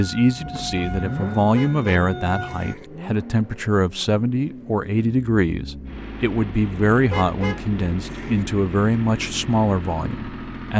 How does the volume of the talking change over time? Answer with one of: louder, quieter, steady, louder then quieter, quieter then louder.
steady.